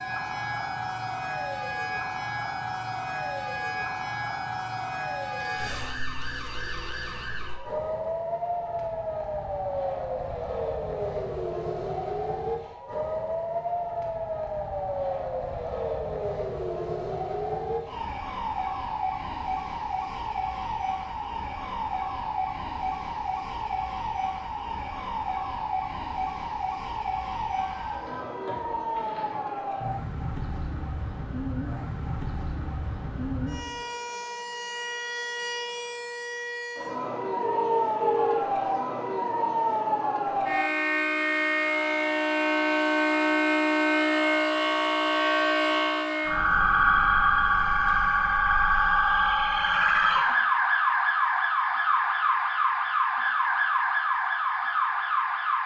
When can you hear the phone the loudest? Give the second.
38 s.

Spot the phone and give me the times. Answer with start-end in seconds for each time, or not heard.
5.6-7.3, 27.8-29.6, 37.4-38.4.